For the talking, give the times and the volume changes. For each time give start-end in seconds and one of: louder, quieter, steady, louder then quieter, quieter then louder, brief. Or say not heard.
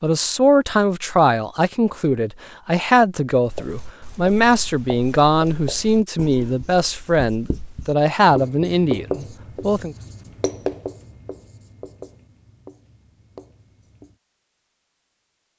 0.0-9.9 steady.